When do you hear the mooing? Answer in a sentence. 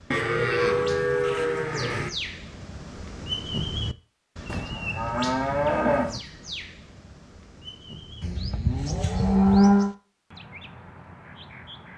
You can hear the mooing from 0.1 to 2.1 s, from 4.5 to 6.2 s and from 8.2 to 9.9 s.